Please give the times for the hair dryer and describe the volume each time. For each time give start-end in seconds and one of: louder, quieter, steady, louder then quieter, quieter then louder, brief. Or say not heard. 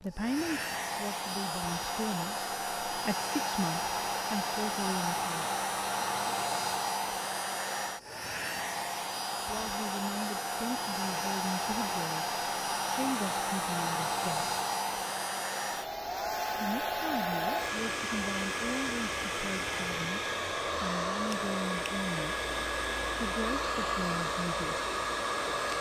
0.0-25.7 steady.